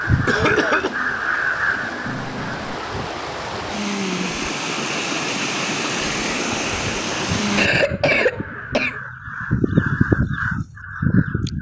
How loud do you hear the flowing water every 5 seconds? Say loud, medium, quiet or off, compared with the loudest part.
medium, loud, off.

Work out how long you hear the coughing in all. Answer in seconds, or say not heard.
2 s.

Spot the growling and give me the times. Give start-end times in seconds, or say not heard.
2.0-2.8.